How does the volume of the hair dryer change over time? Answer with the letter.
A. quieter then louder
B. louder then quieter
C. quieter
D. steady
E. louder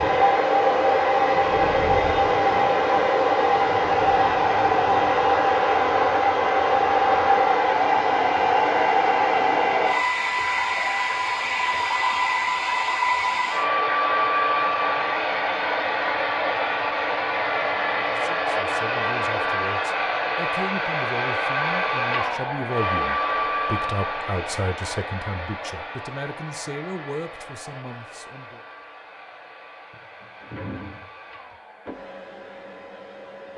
C.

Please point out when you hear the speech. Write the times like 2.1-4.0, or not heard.
18.1-28.6.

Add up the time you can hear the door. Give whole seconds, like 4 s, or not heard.
2 s.